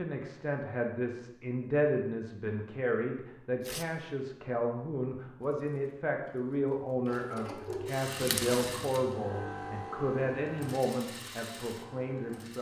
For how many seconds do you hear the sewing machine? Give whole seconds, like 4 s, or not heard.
7 s.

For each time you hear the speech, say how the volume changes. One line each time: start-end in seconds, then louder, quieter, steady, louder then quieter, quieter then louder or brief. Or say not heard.
0.0-12.5 steady.